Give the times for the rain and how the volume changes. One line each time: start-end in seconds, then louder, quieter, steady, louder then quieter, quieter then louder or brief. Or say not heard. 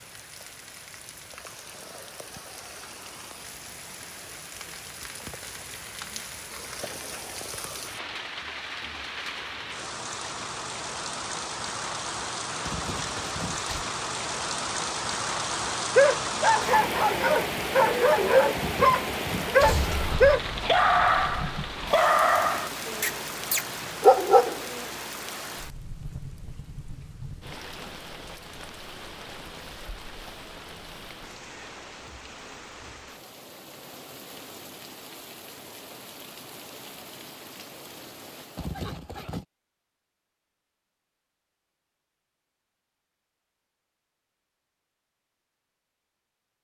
0.0-39.0 louder then quieter.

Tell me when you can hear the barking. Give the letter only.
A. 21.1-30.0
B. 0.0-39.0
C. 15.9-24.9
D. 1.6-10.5
C.